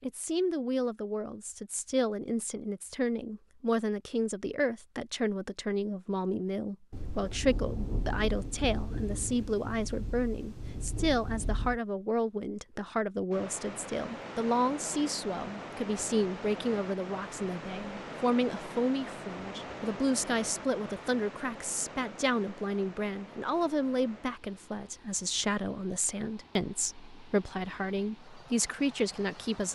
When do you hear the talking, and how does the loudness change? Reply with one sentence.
You can hear the talking from 0.0 to 29.7 s, at a steady volume.